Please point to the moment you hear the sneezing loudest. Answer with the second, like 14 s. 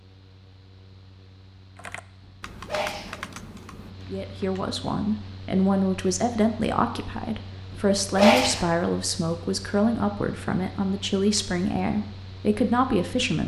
8 s.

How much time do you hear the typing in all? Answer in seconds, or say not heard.
3 s.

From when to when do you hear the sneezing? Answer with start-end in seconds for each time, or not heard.
2.2-3.3, 7.7-8.7.